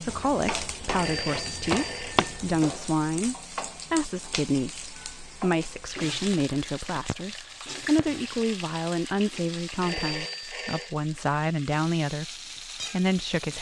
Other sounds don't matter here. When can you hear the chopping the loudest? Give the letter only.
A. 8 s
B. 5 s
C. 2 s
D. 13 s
C.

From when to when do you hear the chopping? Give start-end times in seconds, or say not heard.
0.1-2.6.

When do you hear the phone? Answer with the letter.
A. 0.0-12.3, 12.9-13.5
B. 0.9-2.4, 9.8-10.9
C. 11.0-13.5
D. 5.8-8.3
B.